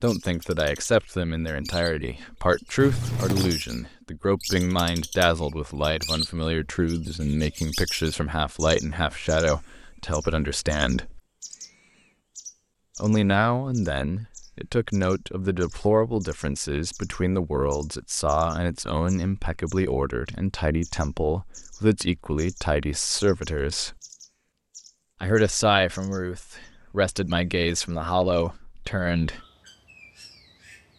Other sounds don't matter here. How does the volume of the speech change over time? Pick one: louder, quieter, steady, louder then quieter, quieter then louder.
steady.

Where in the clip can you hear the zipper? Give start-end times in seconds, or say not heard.
2.8-3.6.